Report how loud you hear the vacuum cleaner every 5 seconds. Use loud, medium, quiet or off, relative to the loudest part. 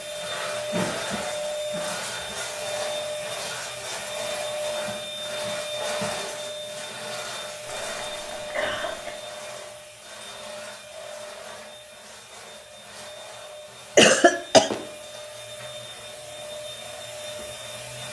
loud, loud, medium, medium.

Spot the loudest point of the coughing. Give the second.
14 s.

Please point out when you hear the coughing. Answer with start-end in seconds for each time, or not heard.
0.7-2.4, 7.7-9.1, 13.9-14.7.